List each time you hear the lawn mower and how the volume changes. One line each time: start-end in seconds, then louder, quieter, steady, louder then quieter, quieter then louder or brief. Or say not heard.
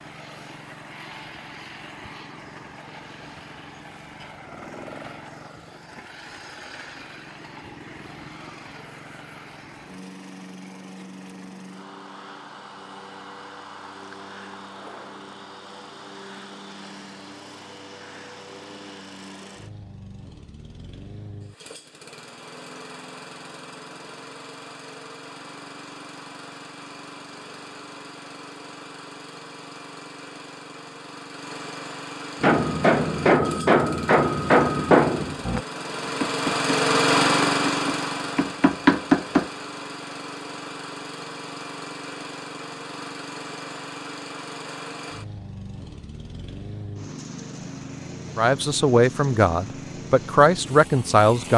0.0-51.5 louder then quieter.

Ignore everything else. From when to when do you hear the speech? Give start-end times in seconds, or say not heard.
48.4-51.5.